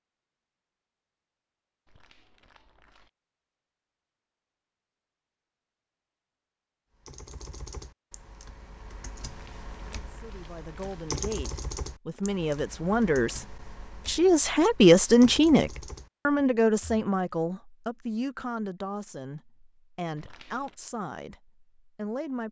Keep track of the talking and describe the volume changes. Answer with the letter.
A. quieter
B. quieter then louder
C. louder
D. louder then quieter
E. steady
D.